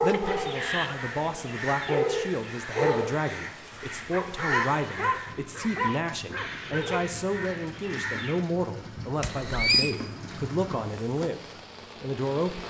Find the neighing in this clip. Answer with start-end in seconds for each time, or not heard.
0.1-0.9, 9.2-9.9.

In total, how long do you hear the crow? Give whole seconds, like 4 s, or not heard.
8 s.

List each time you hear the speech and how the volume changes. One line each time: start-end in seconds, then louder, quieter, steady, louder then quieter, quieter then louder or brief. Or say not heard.
0.0-11.4 steady
12.0-12.6 brief.